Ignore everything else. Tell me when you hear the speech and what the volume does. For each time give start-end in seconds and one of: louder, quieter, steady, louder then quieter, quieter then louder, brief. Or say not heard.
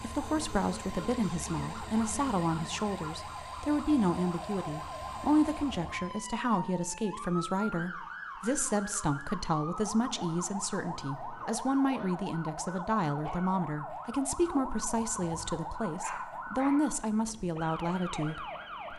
0.0-18.9 steady.